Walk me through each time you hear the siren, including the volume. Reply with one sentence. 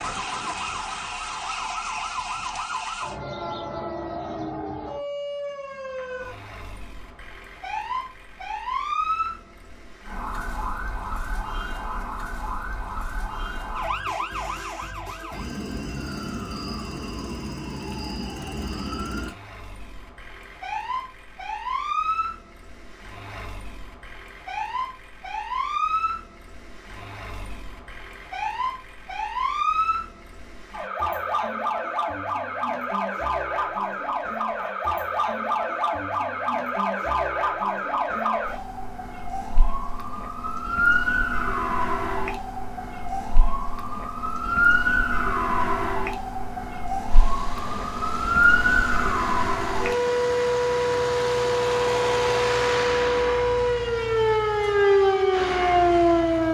The siren can be heard from 0.0 to 56.4 s, getting louder.